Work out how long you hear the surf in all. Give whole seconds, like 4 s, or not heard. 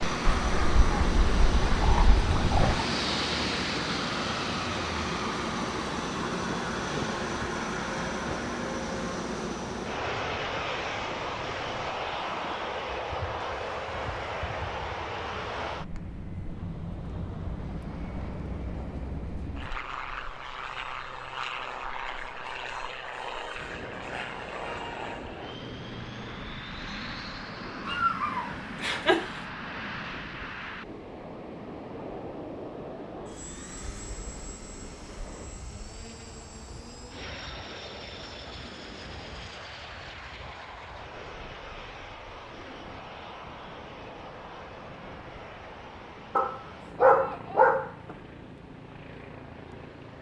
50 s.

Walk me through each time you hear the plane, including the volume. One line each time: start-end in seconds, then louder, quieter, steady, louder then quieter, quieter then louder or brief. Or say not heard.
0.0-50.1 quieter.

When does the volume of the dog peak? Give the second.
47 s.